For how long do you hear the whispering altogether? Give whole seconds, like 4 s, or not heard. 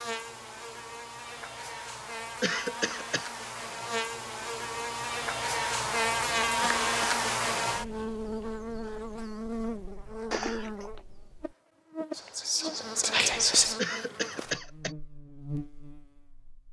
2 s.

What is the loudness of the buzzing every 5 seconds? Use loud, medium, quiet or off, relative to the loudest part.
medium, loud, medium, quiet.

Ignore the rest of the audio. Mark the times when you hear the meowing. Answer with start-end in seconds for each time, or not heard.
not heard.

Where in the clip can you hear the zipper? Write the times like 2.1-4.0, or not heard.
10.3-11.0.